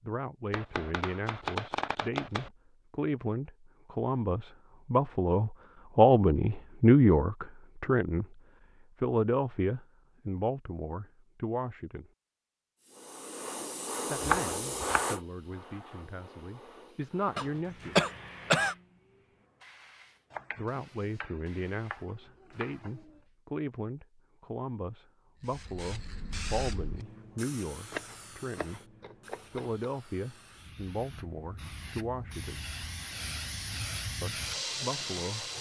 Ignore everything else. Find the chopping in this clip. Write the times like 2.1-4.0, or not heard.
0.5-2.5, 14.2-15.1, 20.3-23.2, 27.9-29.8.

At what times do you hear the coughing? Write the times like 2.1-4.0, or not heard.
17.4-18.8.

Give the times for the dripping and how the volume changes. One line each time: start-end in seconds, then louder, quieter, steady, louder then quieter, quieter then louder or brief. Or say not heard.
not heard.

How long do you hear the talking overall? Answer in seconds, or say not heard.
28 s.